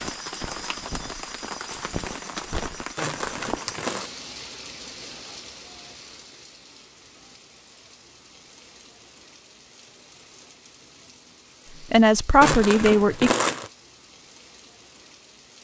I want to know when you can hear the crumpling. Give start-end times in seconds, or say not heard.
3.0-4.1, 12.4-13.7.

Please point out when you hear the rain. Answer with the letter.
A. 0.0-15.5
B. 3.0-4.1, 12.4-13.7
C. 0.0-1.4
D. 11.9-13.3
A.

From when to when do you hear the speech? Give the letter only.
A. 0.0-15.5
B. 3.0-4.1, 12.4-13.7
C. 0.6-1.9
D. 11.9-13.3
D.